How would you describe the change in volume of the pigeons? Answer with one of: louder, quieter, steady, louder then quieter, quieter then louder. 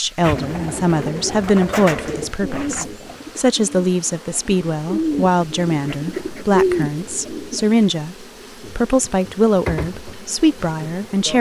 quieter then louder.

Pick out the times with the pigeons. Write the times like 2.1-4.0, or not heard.
0.2-7.7.